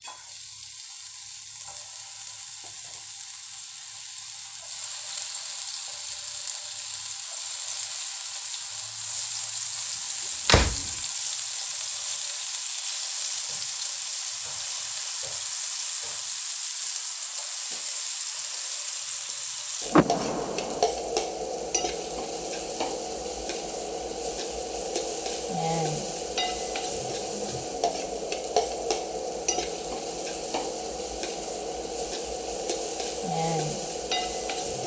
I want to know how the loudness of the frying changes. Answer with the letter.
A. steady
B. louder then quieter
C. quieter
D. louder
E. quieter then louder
D.